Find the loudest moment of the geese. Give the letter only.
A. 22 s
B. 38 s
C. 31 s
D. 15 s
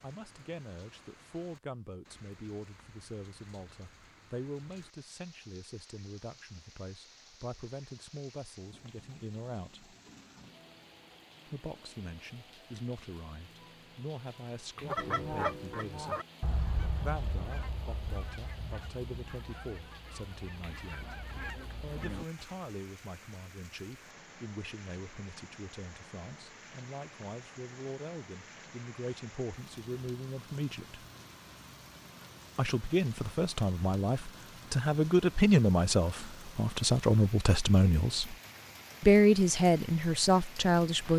D.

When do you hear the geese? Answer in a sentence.
The geese can be heard from 14.8 to 22.6 s.